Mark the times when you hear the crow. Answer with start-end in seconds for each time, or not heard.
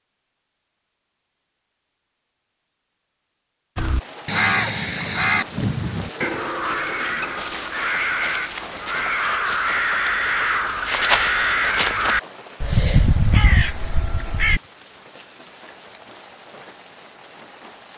3.8-14.6.